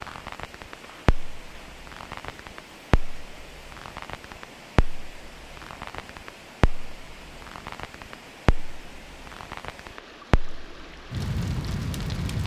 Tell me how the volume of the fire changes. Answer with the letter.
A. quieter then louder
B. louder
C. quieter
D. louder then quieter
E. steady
E.